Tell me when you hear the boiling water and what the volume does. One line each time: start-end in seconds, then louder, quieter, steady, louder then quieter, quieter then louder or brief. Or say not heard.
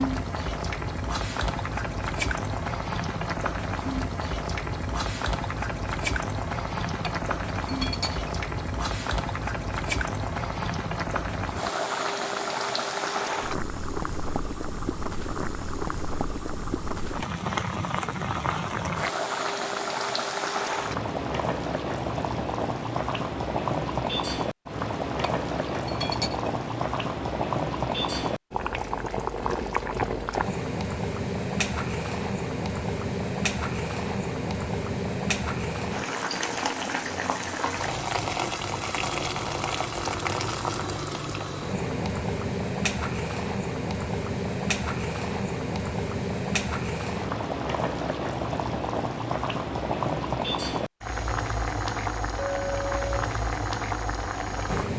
0.0-54.9 steady.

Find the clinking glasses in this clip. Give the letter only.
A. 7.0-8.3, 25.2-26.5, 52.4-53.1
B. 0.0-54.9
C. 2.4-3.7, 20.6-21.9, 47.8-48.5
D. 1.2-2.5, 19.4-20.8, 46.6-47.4
A.